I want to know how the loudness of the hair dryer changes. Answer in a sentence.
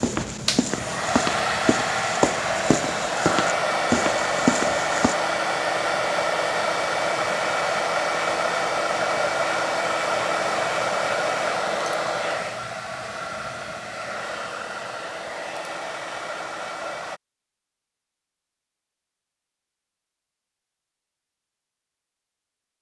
The volume of the hair dryer goes down.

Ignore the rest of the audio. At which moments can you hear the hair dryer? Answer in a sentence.
The hair dryer can be heard from 0.0 to 17.2 s.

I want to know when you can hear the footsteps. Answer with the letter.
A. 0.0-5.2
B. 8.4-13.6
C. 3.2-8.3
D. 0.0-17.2
A.